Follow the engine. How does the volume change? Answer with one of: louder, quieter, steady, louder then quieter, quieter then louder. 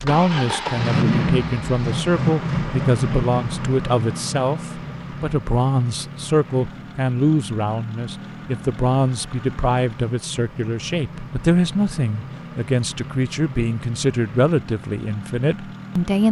quieter.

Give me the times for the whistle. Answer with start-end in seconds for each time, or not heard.
not heard.